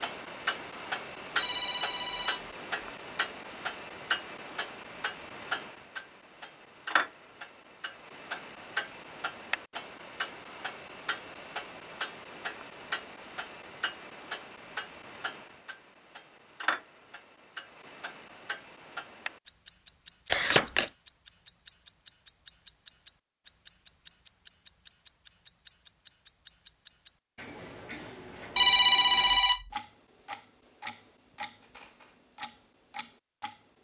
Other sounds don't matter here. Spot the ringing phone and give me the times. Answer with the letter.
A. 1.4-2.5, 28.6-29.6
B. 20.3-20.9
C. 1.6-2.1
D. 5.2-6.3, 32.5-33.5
A.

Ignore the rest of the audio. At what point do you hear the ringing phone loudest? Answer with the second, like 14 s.
29 s.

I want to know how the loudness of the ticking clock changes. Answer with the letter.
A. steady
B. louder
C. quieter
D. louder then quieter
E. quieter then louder
C.